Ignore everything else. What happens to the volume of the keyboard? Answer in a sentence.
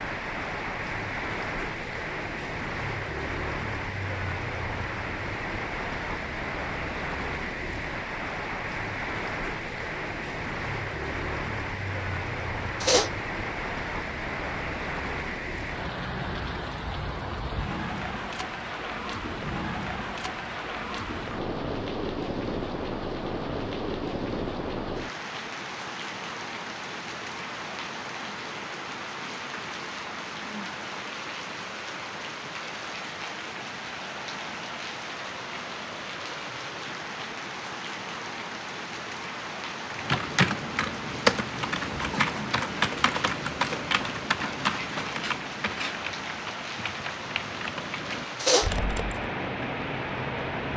The volume of the keyboard goes down.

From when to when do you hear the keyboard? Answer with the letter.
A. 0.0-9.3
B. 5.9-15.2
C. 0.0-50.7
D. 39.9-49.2
D.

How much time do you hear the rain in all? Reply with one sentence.
You can hear the rain for 51 seconds altogether.